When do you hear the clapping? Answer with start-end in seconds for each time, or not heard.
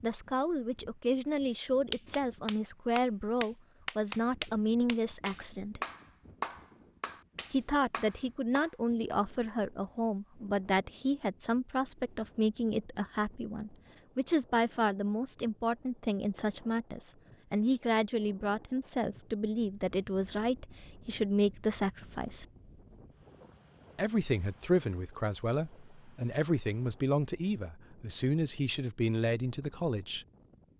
1.9-8.7.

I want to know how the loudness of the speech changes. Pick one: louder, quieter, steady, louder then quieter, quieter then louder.
steady.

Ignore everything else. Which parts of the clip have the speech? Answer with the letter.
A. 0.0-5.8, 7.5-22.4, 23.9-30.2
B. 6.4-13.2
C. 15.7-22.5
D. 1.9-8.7
A.